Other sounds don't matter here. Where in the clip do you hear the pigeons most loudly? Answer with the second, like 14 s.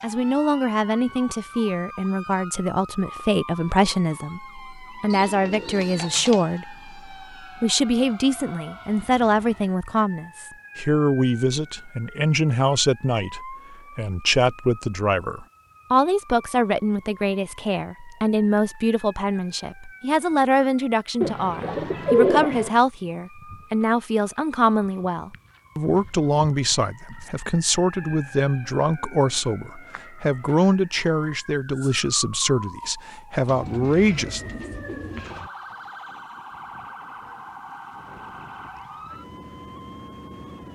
22 s.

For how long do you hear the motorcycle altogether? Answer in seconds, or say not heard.
not heard.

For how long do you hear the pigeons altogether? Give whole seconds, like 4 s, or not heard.
5 s.